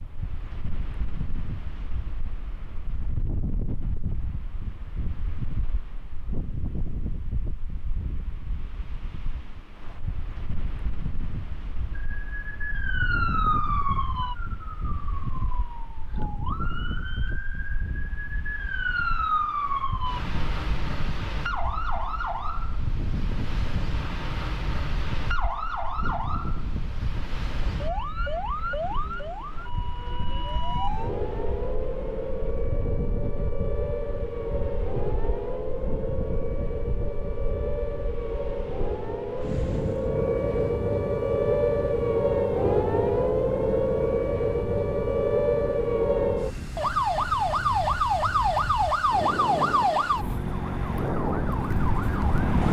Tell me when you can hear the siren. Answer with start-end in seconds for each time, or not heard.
11.9-52.6.